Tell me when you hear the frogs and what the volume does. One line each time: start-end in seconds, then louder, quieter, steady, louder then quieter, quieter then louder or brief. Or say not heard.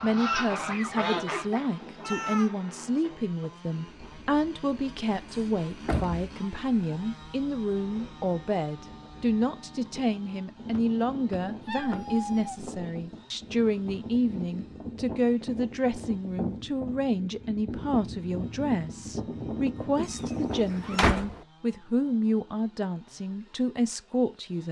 not heard.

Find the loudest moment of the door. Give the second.
21 s.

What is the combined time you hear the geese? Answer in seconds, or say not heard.
2 s.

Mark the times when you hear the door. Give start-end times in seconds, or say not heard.
5.3-6.3, 10.7-12.1, 20.5-21.4.